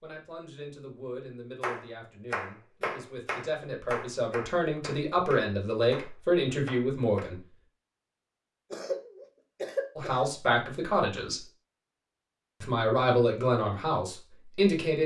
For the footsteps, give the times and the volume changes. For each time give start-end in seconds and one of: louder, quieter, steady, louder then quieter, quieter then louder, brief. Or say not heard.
not heard.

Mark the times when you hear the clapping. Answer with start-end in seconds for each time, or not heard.
1.6-7.2.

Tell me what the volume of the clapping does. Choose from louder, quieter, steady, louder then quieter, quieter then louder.
quieter.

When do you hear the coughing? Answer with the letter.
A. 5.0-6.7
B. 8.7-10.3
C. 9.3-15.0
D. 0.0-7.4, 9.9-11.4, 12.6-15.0
B.